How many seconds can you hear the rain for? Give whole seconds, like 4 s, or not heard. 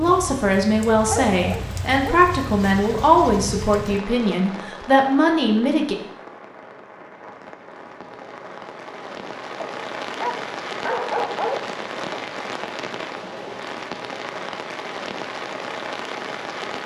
17 s.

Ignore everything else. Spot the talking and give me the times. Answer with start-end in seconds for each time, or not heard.
0.0-6.0.